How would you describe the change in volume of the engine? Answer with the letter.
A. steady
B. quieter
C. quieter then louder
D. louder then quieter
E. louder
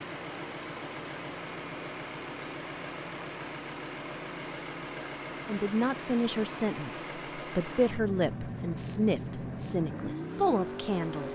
A.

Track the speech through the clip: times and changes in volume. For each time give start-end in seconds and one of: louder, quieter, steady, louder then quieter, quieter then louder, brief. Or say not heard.
5.5-11.3 steady.